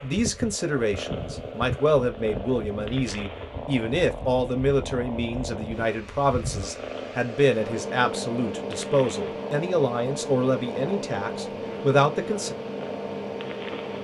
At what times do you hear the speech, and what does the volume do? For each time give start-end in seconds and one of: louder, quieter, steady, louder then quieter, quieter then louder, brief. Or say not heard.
0.0-12.6 steady.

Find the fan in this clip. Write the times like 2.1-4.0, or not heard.
0.1-13.9.